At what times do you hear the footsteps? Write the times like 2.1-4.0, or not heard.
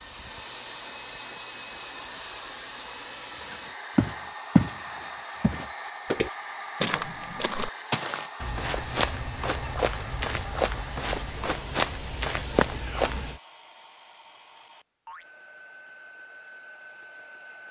3.5-13.4.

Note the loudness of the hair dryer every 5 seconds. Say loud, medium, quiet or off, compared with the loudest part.
loud, loud, medium, medium.